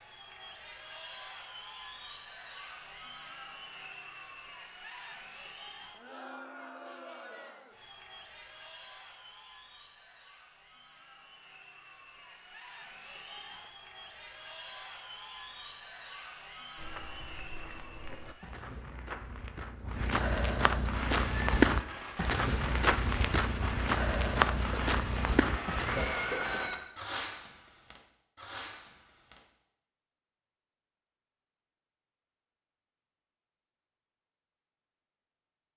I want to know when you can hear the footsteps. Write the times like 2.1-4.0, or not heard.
16.8-26.1.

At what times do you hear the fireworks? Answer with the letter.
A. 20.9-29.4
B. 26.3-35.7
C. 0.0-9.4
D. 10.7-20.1
A.